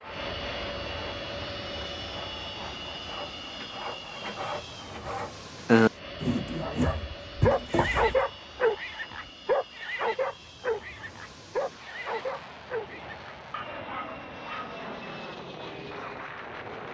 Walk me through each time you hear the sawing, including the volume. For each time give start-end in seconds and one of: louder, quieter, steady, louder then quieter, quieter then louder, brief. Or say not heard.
0.0-8.2 louder then quieter.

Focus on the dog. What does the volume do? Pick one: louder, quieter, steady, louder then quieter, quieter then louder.
quieter.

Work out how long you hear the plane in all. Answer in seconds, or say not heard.
17 s.